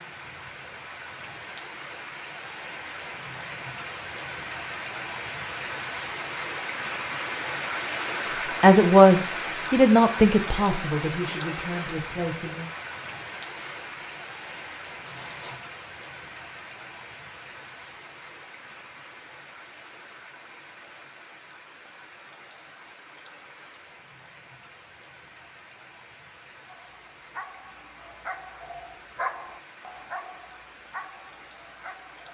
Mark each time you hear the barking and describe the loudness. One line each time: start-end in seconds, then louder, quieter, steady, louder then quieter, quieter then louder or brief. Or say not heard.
26.6-32.3 louder then quieter.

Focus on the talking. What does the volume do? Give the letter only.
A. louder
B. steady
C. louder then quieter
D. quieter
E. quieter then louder
D.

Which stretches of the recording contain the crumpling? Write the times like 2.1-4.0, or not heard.
13.6-15.7.